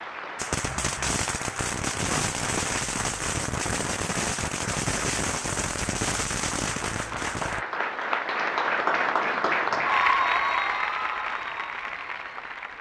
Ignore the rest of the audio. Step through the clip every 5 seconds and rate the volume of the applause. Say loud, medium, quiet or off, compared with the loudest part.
medium, loud, loud.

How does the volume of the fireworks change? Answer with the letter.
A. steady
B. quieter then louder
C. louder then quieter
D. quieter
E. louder
A.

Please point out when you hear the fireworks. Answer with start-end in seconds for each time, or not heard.
0.3-7.7.